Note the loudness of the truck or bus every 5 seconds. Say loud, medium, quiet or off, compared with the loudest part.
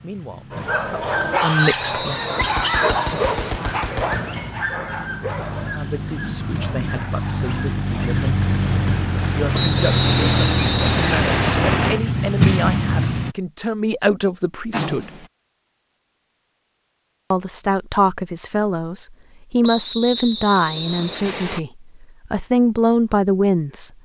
quiet, medium, loud, off, off.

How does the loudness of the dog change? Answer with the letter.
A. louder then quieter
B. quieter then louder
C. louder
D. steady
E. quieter
E.